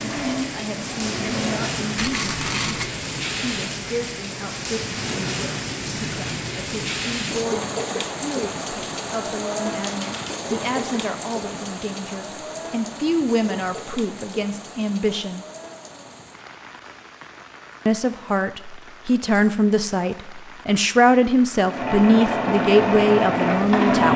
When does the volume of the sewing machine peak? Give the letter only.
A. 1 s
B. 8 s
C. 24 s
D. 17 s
C.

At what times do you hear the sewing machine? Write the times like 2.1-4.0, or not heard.
0.0-1.8, 21.6-24.1.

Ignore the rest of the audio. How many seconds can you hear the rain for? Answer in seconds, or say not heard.
24 s.